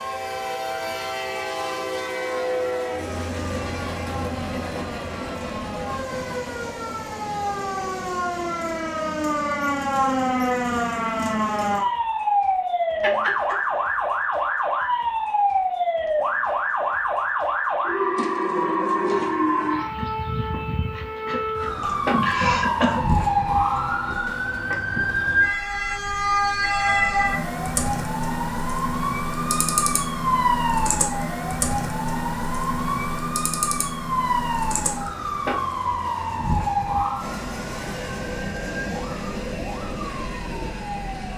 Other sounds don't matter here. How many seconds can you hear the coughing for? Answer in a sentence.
You can hear the coughing for 2 seconds altogether.